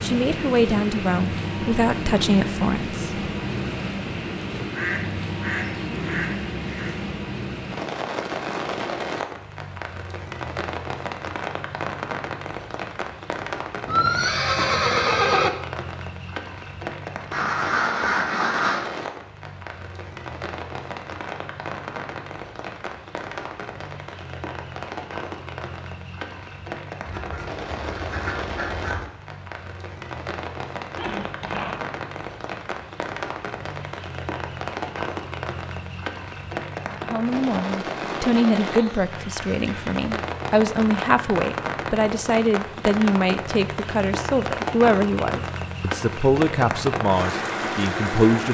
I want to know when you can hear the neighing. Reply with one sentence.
You can hear the neighing from 13.8 to 15.5 s and from 30.9 to 31.9 s.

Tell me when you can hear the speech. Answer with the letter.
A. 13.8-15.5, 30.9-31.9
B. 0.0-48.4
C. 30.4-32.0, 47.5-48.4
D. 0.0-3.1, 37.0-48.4
D.